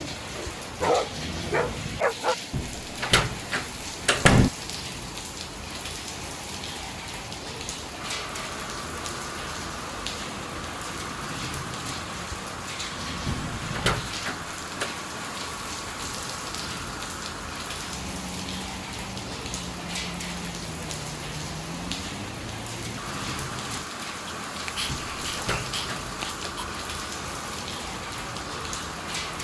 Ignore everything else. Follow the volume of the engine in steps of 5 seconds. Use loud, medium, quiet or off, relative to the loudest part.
off, loud, loud, loud, loud, loud.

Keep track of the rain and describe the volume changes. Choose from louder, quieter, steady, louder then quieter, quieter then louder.
steady.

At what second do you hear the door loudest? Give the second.
4 s.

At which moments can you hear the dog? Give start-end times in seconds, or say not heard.
0.3-2.4, 24.2-26.8.